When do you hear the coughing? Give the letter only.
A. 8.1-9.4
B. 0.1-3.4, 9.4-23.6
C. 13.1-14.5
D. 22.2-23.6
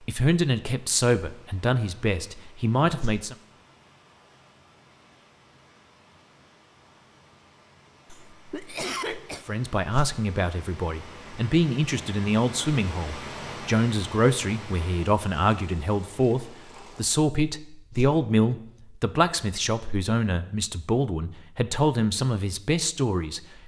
A.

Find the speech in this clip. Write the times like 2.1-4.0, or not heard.
0.1-3.4, 9.4-23.6.